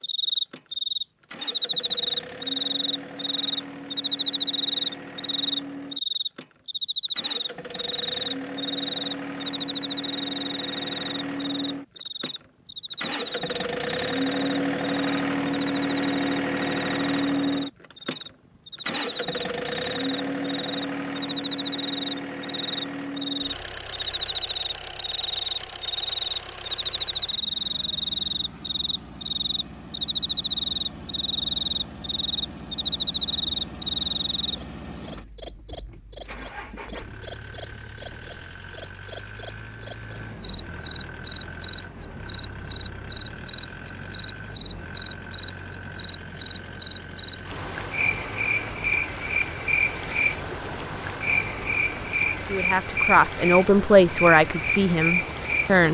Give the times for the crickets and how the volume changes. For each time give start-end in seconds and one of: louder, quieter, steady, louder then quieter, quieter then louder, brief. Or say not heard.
0.0-55.8 quieter then louder.